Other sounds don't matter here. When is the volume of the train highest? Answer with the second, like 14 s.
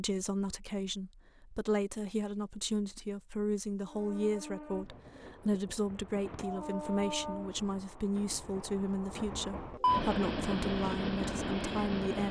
10 s.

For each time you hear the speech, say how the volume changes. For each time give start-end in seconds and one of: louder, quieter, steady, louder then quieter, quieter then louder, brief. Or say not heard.
0.0-12.2 steady.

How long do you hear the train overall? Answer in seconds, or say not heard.
8 s.